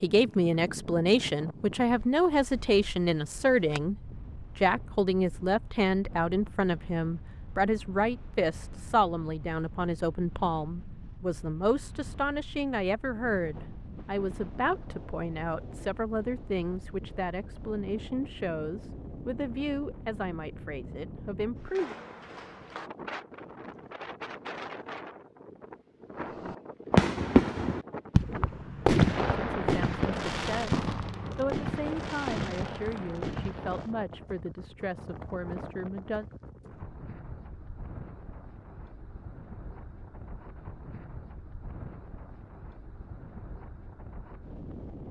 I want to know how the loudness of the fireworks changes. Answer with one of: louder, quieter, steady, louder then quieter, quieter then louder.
quieter.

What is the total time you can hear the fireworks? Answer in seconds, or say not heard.
8 s.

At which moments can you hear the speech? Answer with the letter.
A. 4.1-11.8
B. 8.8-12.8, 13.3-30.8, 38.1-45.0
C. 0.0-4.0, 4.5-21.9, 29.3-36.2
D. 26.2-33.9
C.